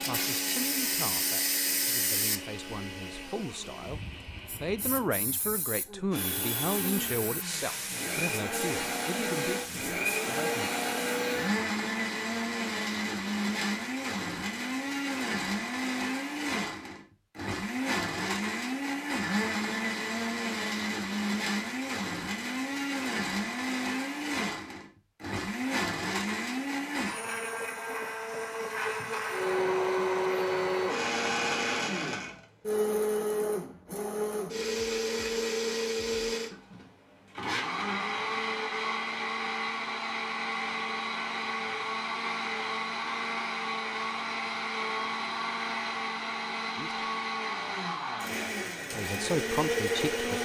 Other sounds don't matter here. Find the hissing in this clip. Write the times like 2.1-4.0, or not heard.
0.0-11.2.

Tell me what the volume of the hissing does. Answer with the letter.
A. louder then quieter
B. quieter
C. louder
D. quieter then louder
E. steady
D.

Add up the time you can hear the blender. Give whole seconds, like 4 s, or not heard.
50 s.